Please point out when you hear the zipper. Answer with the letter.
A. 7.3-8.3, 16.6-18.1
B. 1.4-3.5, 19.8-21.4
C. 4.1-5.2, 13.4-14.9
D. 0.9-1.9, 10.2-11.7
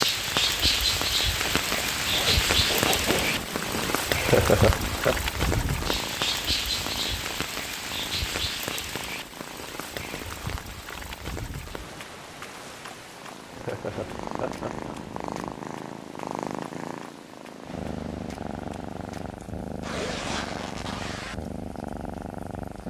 B.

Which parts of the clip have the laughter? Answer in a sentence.
The laughter can be heard from 4.1 to 5.2 s and from 13.4 to 14.9 s.